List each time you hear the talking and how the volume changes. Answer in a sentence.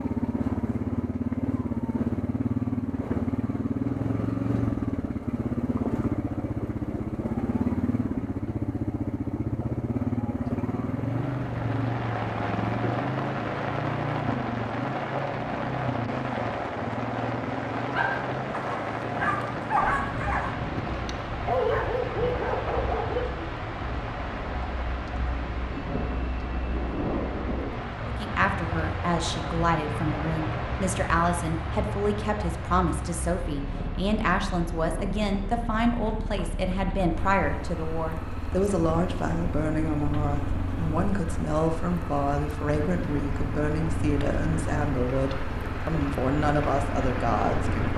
The talking can be heard from 28.1 to 47.9 s, at a steady volume.